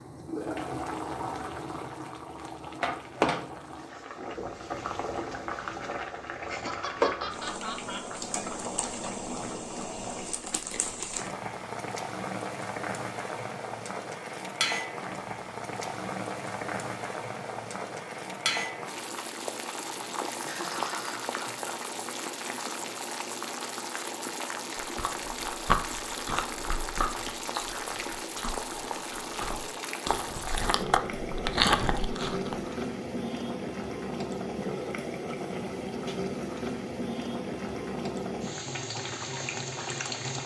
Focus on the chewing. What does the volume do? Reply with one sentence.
The loudness of the chewing goes down, then up.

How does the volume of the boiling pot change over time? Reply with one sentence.
The loudness of the boiling pot stays about the same.